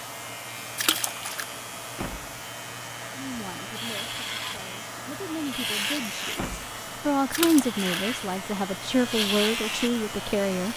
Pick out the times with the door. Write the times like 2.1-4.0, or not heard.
1.9-2.4, 6.3-6.8.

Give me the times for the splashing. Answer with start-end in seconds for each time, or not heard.
0.8-1.4, 7.3-7.8.